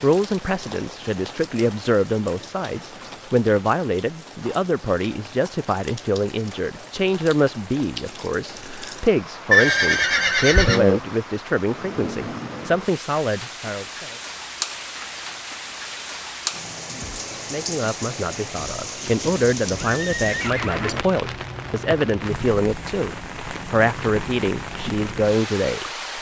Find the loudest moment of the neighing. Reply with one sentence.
The volume of the neighing peaks at 10 seconds.